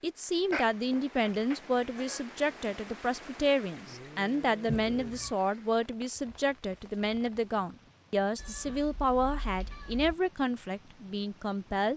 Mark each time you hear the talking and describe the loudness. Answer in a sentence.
You can hear the talking from 0.0 to 11.9 s, at a steady volume.